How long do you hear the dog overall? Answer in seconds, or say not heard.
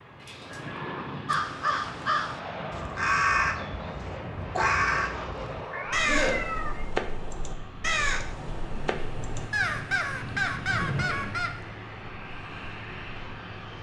not heard.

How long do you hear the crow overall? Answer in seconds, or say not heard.
10 s.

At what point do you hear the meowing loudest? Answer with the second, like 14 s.
6 s.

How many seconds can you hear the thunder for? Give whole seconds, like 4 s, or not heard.
3 s.